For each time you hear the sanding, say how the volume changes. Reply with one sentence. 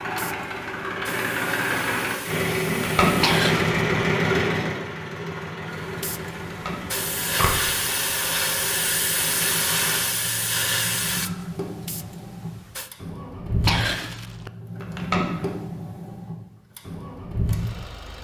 The sanding can't be heard in this clip.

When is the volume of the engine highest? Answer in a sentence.
The loudest moment of the engine is at 4 seconds.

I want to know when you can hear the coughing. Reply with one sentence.
The coughing can be heard from 3.2 to 3.8 s and from 13.7 to 14.5 s.